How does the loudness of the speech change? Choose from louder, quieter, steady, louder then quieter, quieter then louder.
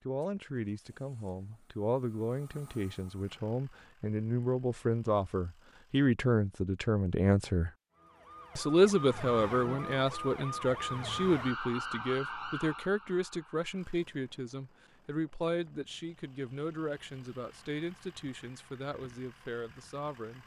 louder then quieter.